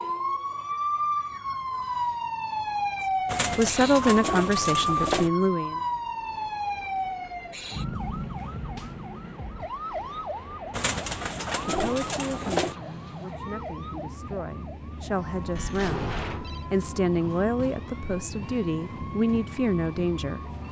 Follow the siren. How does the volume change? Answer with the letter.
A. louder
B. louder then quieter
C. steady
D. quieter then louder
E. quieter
E.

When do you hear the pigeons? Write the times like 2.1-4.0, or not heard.
3.2-5.3, 10.7-12.8.